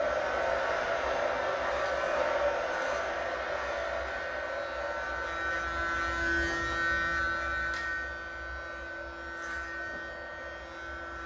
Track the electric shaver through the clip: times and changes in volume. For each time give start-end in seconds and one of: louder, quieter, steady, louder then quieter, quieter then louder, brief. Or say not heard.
0.0-11.2 louder then quieter.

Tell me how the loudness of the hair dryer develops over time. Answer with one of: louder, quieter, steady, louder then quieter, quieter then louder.
quieter.